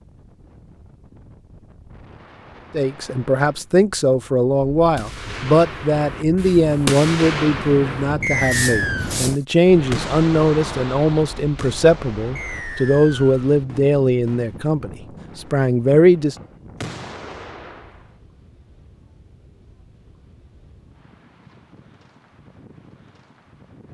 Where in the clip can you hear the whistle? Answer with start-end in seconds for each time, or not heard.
8.2-9.1, 12.3-13.4.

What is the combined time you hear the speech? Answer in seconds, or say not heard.
14 s.